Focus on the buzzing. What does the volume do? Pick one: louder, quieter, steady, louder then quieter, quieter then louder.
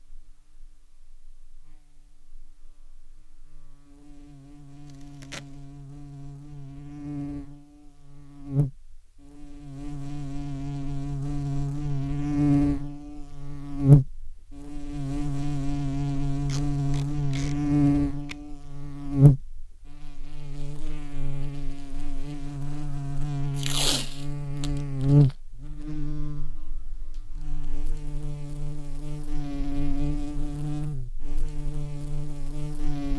louder then quieter.